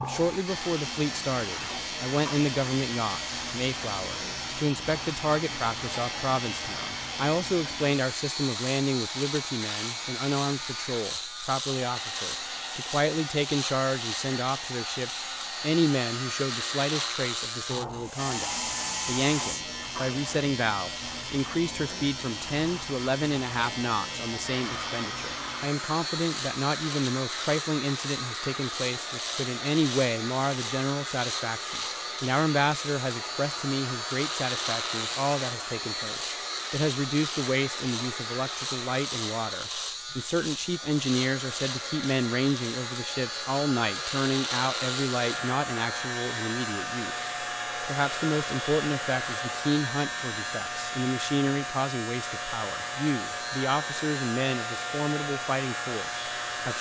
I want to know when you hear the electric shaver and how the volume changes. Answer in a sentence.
You can hear the electric shaver from 0.0 to 56.7 s, at a steady volume.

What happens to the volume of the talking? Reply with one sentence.
The volume of the talking stays about the same.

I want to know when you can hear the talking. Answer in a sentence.
The talking can be heard from 0.0 to 56.7 s.